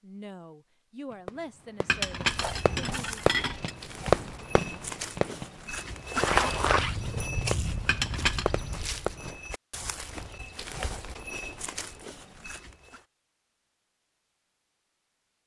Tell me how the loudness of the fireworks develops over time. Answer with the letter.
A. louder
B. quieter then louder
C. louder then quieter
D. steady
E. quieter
C.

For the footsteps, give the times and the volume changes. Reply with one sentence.
You can hear the footsteps from 2.1 to 13.0 s, getting louder then quieter.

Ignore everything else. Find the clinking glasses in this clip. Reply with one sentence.
You can hear the clinking glasses from 1.9 to 3.7 s and from 7.8 to 8.5 s.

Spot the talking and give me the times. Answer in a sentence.
You can hear the talking from 0.0 to 3.2 s.